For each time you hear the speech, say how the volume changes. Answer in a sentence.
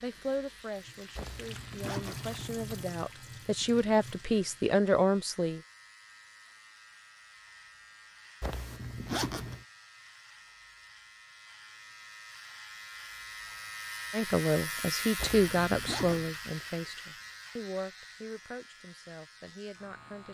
You can hear the speech from 0.0 to 5.6 s, getting louder; and from 14.1 to 20.2 s, getting quieter.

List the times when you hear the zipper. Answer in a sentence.
You can hear the zipper from 1.1 to 3.0 s, from 8.4 to 9.7 s and from 15.2 to 16.3 s.